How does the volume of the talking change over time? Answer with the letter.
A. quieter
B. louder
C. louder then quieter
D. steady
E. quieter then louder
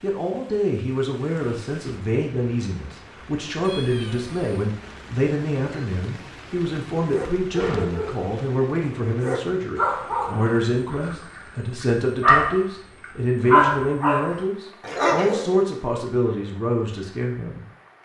D.